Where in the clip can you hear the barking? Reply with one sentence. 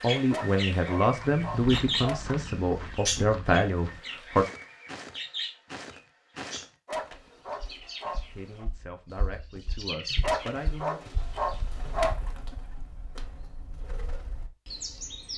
The barking can be heard from 0.3 to 2.2 s, from 6.8 to 8.7 s and from 10.2 to 12.2 s.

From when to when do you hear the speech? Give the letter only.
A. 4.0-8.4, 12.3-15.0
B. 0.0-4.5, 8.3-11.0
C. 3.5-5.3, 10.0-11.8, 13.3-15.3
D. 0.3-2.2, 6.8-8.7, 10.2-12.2
B.